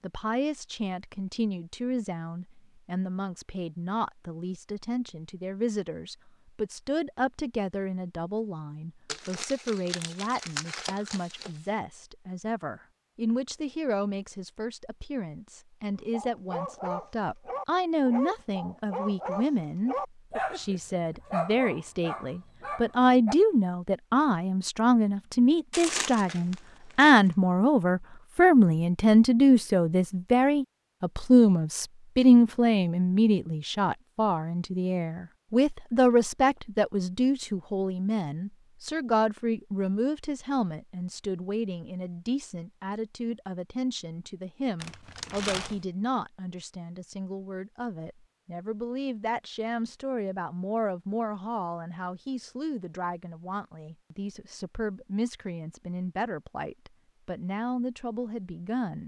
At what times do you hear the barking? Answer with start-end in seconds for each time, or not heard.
16.1-23.4.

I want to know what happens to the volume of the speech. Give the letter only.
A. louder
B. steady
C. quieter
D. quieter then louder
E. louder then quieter
E.